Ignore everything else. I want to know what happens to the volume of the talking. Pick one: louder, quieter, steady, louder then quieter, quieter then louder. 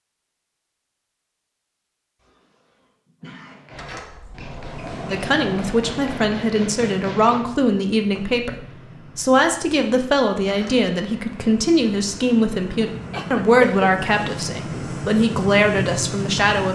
steady.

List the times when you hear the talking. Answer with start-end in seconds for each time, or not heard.
5.1-16.6.